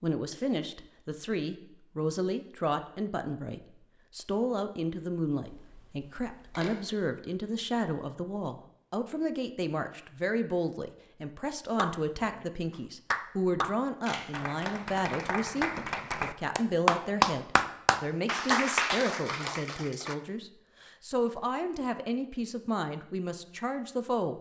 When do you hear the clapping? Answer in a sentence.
You can hear the clapping from 11.8 to 20.1 s.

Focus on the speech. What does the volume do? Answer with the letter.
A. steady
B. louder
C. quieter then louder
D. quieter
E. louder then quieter
A.